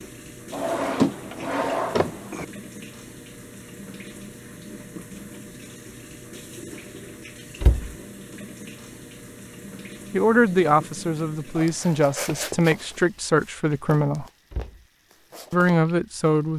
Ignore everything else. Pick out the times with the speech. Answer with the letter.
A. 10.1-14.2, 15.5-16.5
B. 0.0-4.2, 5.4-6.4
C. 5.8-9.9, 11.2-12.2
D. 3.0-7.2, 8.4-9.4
A.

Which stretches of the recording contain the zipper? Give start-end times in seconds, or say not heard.
not heard.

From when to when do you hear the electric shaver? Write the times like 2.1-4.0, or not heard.
not heard.